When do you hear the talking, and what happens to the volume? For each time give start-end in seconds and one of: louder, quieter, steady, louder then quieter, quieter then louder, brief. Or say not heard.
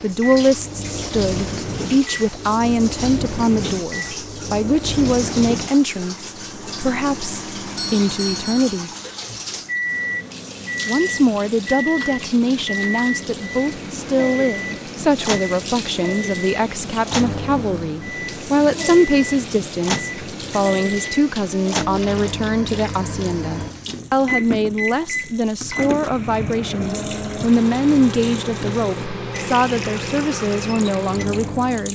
0.0-8.9 steady
10.8-31.9 steady.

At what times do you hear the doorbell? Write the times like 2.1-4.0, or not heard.
7.8-8.8.